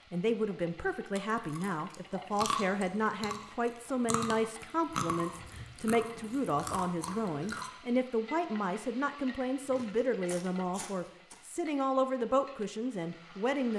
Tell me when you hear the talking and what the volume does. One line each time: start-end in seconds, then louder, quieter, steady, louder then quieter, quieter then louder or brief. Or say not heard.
0.1-13.7 steady.